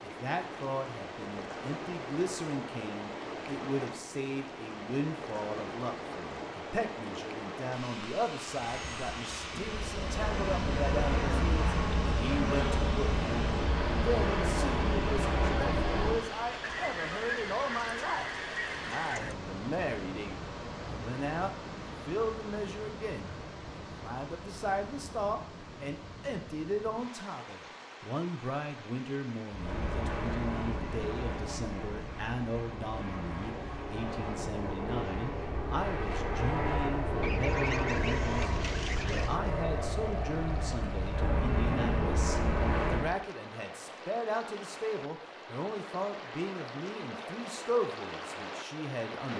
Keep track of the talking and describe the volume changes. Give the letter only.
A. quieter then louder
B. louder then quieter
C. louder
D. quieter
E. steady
E.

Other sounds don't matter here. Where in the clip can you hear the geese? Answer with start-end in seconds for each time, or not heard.
16.6-19.4, 37.2-39.4.